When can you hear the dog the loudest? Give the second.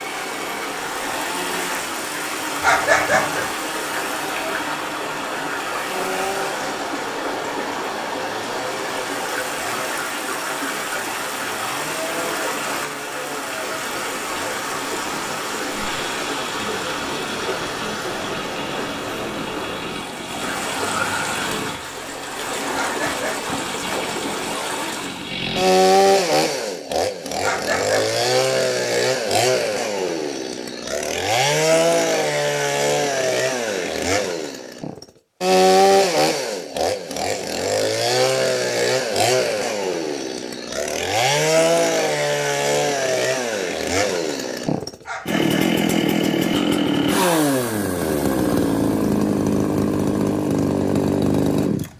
3 s.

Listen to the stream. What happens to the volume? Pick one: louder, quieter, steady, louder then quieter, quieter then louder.
steady.